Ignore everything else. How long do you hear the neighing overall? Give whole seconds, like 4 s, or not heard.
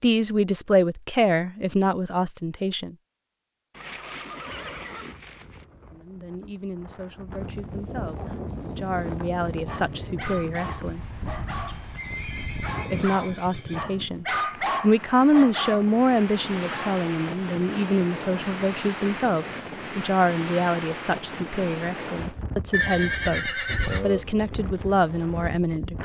6 s.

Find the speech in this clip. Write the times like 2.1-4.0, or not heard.
0.0-3.0, 5.9-11.1, 12.7-26.0.